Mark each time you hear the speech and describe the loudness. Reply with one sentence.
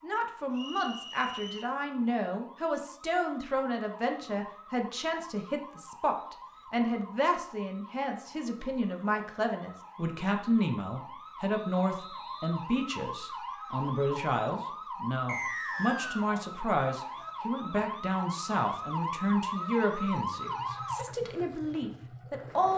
The speech can be heard from 0.0 to 22.7 s, at a steady volume.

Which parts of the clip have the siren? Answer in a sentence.
You can hear the siren from 0.0 to 21.1 s.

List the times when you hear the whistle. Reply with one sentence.
The whistle can be heard from 0.5 to 1.8 s, from 11.5 to 12.7 s and from 15.2 to 16.3 s.